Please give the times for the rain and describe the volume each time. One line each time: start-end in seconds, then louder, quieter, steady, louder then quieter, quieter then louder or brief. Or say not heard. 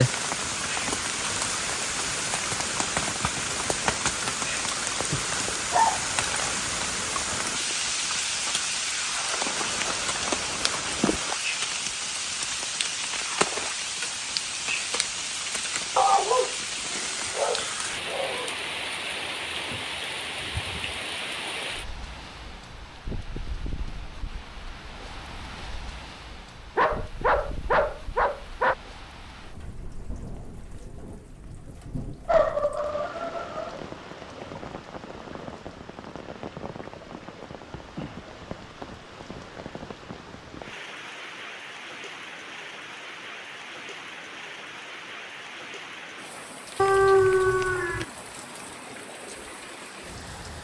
0.0-50.5 quieter.